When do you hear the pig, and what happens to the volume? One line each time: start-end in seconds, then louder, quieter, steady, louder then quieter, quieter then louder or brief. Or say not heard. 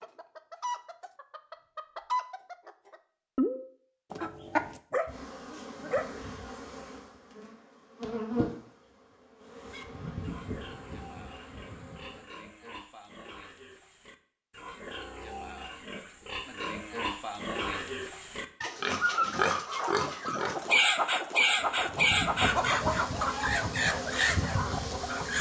9.4-20.7 louder.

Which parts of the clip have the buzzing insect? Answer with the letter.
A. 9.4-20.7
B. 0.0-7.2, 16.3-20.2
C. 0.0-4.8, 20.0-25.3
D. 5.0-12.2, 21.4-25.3
D.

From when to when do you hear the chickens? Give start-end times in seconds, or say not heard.
0.0-4.8, 20.0-25.3.